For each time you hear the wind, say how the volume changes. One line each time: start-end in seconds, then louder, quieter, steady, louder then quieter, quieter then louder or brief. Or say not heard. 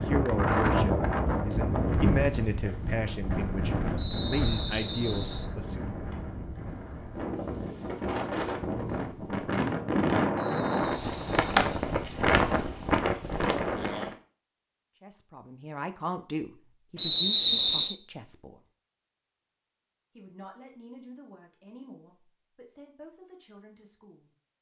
0.0-14.2 quieter then louder.